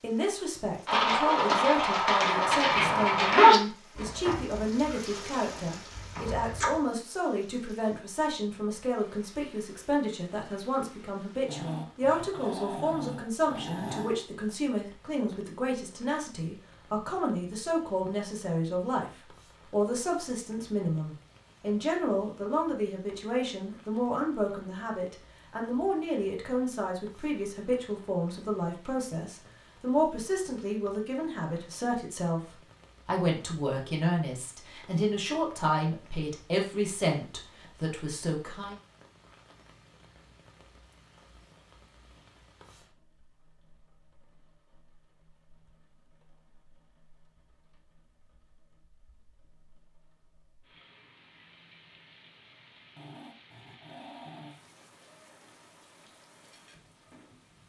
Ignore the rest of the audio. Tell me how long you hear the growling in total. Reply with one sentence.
The growling can be heard for 4 seconds in total.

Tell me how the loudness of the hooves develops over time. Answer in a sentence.
The loudness of the hooves goes up, then down.